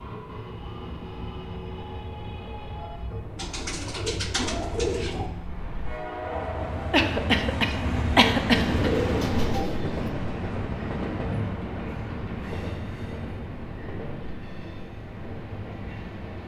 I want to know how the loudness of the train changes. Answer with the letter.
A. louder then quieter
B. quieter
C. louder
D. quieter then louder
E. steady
A.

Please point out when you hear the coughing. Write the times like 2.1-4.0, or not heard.
6.9-8.9.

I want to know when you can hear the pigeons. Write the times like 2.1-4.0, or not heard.
3.4-5.3, 8.6-10.1.